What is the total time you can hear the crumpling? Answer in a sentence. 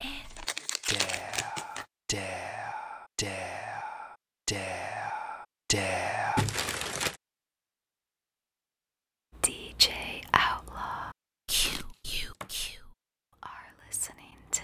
The crumpling can be heard for 3 seconds in total.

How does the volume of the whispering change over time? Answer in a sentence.
The volume of the whispering goes up, then down.